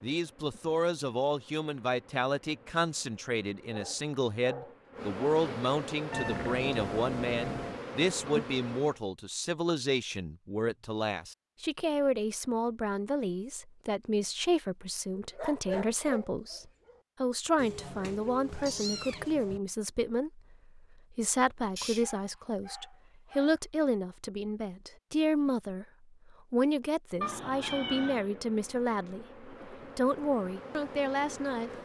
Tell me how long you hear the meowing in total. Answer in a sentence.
The meowing can be heard for 5 seconds in total.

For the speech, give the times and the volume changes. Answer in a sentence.
You can hear the speech from 0.0 to 31.7 s, at a steady volume.